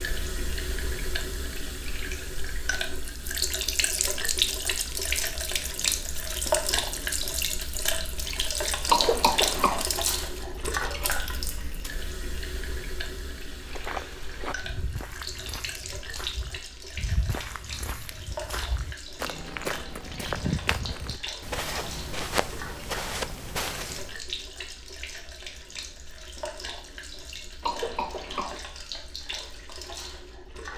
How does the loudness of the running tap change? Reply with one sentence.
The volume of the running tap goes down.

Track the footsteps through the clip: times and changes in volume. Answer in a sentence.
The footsteps can be heard from 13.5 to 24.2 s, getting louder.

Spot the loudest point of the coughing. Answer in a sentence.
The volume of the coughing peaks at 9 seconds.